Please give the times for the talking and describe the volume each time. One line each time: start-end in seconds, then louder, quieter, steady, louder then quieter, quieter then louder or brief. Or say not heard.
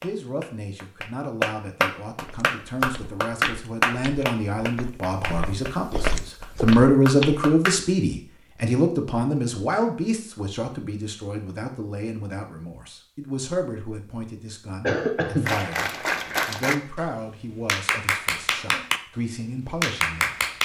0.0-20.4 louder then quieter.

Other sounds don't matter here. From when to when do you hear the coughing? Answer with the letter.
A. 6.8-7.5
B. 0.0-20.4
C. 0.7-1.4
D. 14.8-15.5
D.